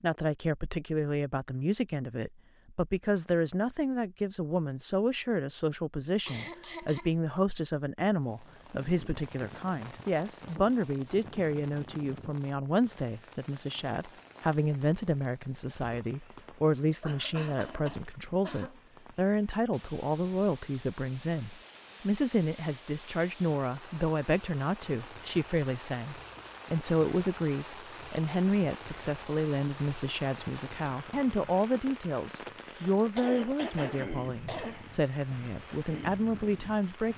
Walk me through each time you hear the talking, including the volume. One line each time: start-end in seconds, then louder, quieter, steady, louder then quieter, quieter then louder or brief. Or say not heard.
0.0-37.1 steady.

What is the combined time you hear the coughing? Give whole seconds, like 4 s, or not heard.
5 s.